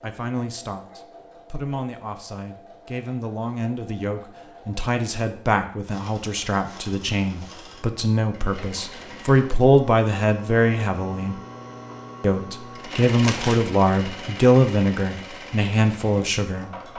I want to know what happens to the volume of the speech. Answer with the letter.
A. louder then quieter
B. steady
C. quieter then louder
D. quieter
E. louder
E.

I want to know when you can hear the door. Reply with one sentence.
The door can't be heard in this clip.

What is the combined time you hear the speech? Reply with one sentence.
The speech can be heard for 16 seconds in total.